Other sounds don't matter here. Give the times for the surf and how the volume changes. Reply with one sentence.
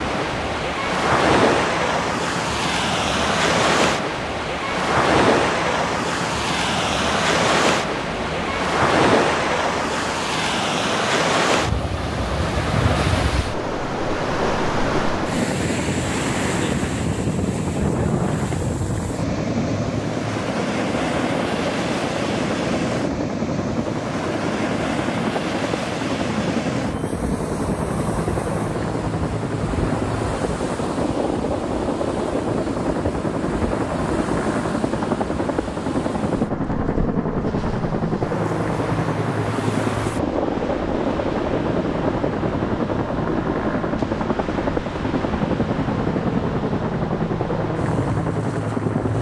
You can hear the surf from 0.0 to 49.1 s, getting quieter.